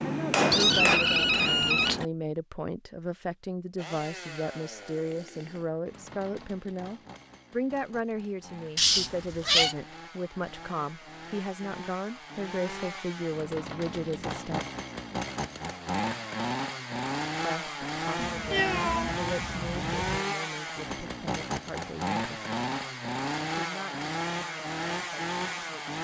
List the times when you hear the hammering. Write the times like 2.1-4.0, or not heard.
0.0-1.8.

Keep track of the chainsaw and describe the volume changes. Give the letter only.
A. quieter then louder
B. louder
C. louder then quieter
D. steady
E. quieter
B.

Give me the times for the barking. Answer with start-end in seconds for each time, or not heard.
not heard.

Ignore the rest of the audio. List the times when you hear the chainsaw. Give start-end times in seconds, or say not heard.
3.8-25.9.